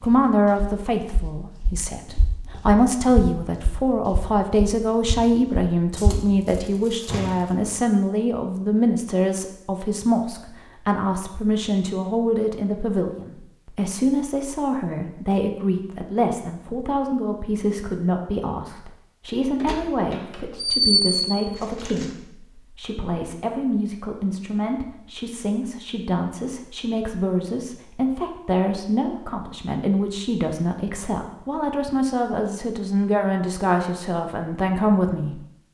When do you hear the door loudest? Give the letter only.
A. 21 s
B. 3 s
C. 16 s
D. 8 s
A.